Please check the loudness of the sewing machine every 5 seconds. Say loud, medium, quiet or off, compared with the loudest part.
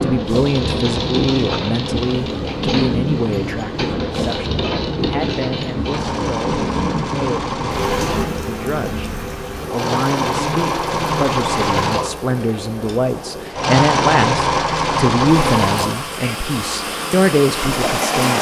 medium, medium, loud, loud.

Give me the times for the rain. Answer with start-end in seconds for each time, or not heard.
0.0-18.3.